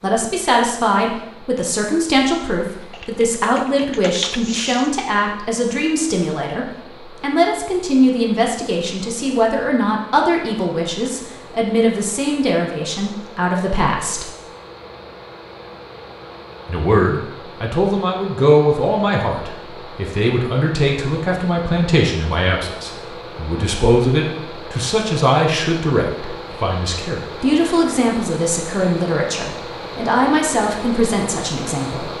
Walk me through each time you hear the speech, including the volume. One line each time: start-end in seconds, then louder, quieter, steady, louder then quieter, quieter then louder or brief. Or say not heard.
0.0-14.2 steady
16.6-32.1 steady.